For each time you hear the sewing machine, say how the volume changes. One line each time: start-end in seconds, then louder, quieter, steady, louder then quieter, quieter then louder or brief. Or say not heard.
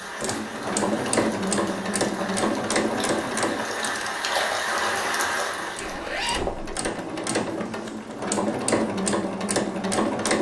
0.0-10.3 quieter then louder.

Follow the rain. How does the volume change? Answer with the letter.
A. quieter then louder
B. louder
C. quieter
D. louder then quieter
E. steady
B.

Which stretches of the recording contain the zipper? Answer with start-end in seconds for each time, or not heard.
5.8-6.8.